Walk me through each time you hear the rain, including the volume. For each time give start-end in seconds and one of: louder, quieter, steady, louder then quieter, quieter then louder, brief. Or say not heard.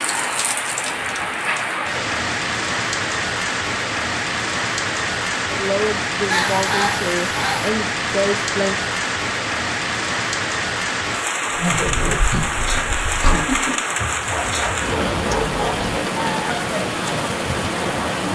0.0-18.2 steady.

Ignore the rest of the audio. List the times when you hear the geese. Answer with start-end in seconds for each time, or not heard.
6.3-7.7.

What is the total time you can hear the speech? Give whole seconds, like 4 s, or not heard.
3 s.